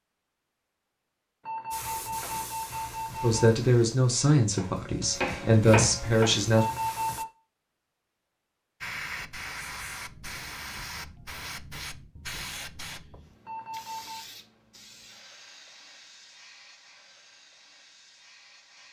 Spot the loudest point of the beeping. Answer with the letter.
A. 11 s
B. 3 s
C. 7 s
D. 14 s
C.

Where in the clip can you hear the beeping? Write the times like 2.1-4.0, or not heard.
1.4-3.5, 6.5-7.3, 13.4-14.2.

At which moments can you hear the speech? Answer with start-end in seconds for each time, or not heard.
3.2-6.7.